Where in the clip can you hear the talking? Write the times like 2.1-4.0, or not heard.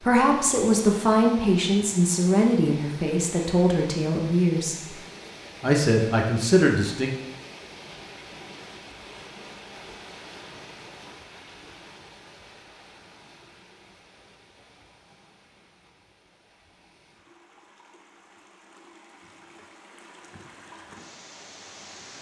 0.0-4.8, 5.6-7.1.